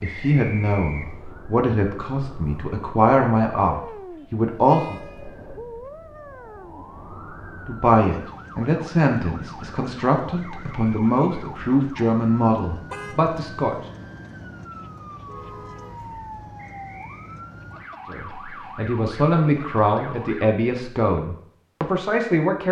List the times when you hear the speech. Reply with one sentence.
The speech can be heard from 0.0 to 5.0 s, from 7.7 to 13.8 s and from 18.1 to 22.6 s.